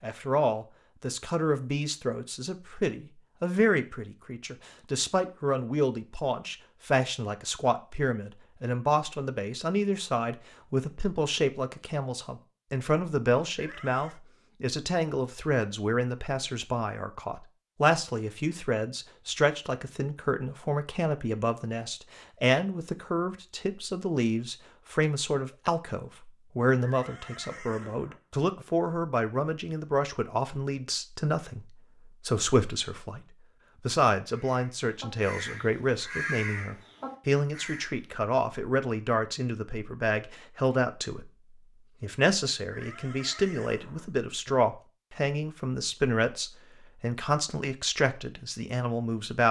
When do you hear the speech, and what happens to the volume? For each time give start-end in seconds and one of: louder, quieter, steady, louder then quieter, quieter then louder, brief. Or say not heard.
0.0-49.4 steady.